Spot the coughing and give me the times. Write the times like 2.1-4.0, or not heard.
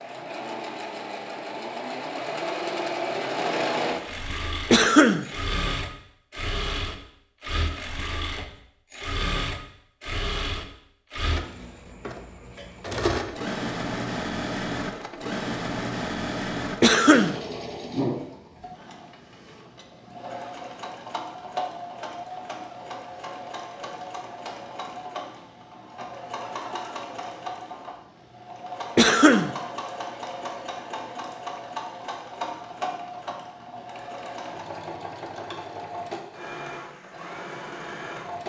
4.7-5.2, 16.8-17.4, 28.9-29.5.